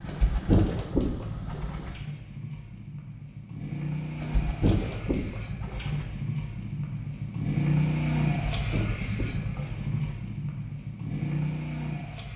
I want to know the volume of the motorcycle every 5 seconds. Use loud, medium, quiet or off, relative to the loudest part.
medium, loud, loud.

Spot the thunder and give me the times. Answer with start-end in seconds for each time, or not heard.
not heard.